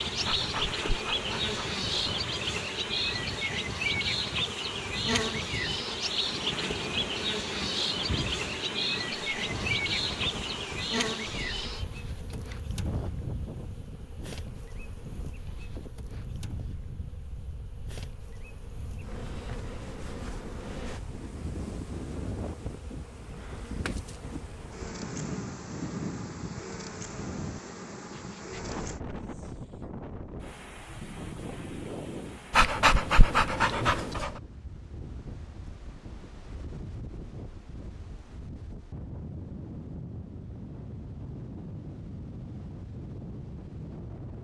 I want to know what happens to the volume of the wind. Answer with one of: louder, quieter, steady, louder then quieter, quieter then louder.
steady.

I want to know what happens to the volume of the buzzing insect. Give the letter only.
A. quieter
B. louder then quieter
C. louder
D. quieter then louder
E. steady
A.